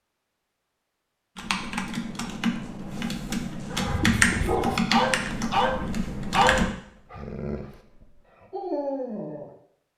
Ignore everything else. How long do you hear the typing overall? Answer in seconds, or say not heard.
5 s.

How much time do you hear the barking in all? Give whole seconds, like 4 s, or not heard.
6 s.